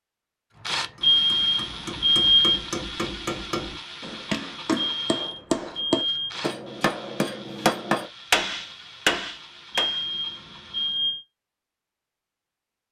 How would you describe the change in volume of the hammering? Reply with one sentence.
The loudness of the hammering goes up.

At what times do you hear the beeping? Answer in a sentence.
The beeping can be heard from 1.0 to 2.6 s, from 5.0 to 6.4 s and from 9.7 to 11.2 s.